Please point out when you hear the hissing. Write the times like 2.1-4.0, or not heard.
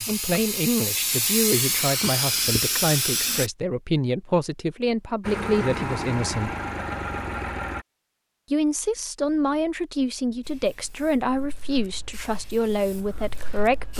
0.0-3.5, 10.4-13.9.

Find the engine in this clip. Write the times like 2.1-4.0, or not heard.
5.2-7.8.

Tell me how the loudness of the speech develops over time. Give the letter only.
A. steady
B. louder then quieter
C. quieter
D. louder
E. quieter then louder
A.